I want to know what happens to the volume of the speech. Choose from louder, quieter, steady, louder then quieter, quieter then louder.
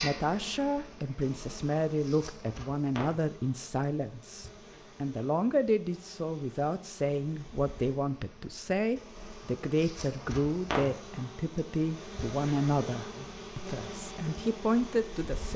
steady.